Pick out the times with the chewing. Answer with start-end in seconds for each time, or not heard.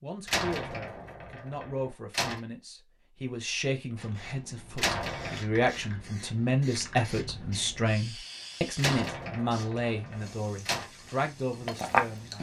9.8-12.3.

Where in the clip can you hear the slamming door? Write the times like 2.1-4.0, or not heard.
0.2-2.4, 4.8-5.4, 8.8-10.9.